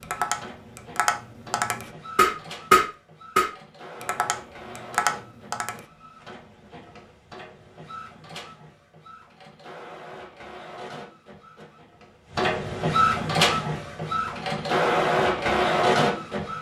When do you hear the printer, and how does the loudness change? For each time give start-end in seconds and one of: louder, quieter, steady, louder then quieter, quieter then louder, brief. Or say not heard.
0.0-16.5 louder.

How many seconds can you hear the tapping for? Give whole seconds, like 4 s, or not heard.
6 s.